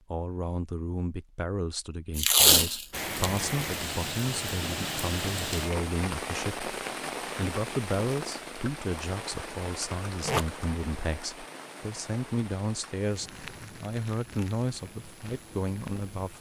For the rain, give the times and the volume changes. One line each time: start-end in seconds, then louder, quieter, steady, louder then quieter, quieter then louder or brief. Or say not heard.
2.9-16.3 quieter.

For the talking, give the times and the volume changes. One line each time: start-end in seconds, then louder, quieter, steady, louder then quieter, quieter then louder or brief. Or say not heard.
0.1-16.3 steady.